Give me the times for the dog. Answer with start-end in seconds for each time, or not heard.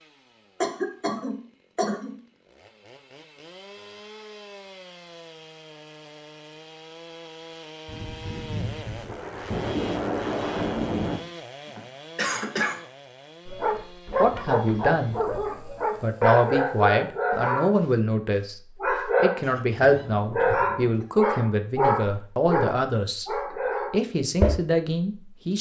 13.4-19.4, 20.3-24.6.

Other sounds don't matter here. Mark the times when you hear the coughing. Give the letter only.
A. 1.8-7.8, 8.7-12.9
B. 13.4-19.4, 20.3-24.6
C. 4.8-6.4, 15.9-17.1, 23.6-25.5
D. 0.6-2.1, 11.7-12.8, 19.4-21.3
D.